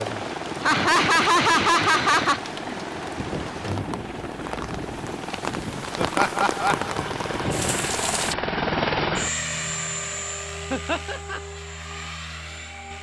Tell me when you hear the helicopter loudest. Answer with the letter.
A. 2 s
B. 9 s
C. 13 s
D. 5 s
B.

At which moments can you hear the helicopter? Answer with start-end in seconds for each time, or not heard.
0.0-12.9.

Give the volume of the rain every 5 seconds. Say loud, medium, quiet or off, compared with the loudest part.
medium, loud, off.